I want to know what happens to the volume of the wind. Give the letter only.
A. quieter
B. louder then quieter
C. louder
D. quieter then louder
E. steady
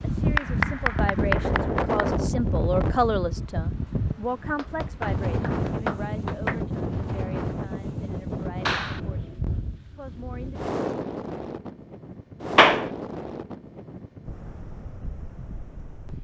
A.